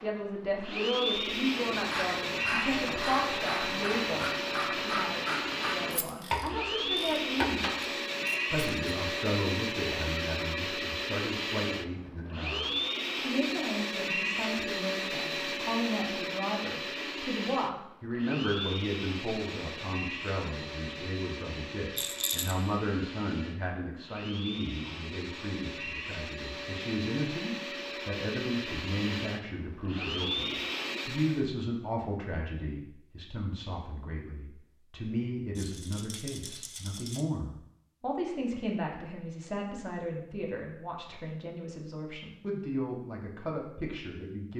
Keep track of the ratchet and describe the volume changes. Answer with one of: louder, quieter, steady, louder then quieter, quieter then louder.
steady.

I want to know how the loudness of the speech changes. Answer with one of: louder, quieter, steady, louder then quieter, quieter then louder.
steady.